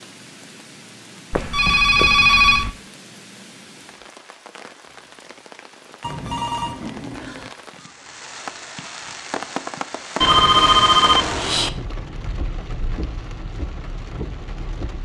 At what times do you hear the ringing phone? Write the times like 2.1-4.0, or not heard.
1.3-2.7, 6.0-7.5, 10.2-11.7.